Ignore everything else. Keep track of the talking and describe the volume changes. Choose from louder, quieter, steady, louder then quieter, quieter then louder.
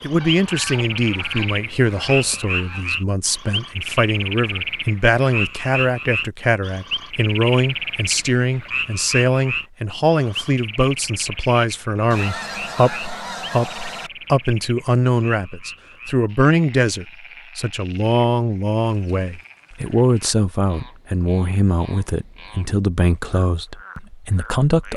steady.